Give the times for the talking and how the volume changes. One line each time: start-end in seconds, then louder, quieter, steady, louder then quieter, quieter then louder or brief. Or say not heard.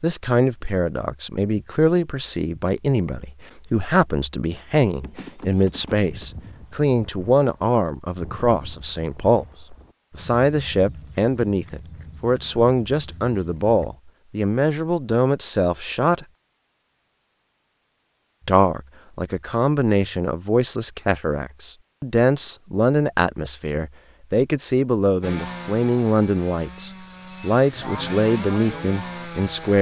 0.0-16.2 steady
18.4-29.7 steady.